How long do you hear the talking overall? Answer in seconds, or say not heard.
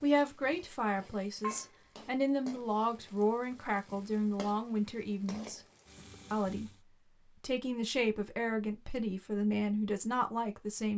10 s.